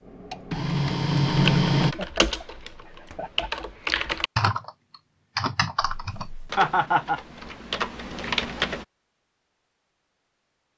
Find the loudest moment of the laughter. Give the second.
7 s.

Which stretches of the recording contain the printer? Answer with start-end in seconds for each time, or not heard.
0.0-1.9.